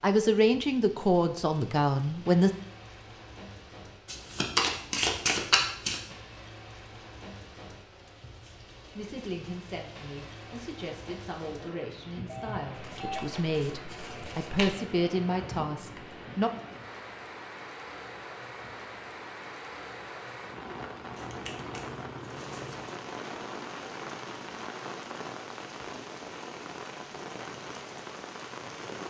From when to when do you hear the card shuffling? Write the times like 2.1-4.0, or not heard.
4.0-6.0, 12.7-14.7, 21.1-22.9.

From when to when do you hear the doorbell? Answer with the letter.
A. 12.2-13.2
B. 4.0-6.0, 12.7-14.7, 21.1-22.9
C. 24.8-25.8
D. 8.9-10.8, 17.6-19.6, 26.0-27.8
A.